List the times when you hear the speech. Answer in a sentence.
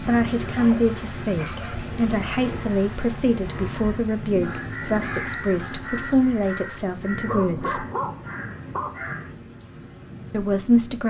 You can hear the speech from 0.1 to 7.8 s and from 10.3 to 11.0 s.